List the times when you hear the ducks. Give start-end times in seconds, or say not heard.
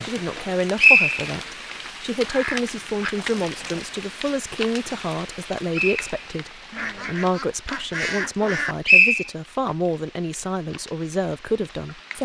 2.2-3.9, 6.7-8.8.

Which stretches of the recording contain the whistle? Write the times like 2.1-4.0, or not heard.
0.8-1.2, 5.7-6.2, 8.8-9.2.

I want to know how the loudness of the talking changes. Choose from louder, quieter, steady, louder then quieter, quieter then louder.
steady.